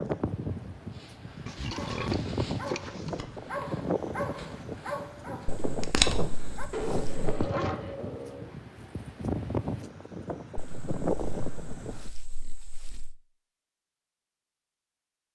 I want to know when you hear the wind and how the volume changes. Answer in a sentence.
You can hear the wind from 0.0 to 12.1 s, at a steady volume.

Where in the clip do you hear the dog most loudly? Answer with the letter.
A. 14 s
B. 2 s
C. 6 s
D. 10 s
C.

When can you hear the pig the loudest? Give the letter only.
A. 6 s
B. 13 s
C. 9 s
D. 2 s
D.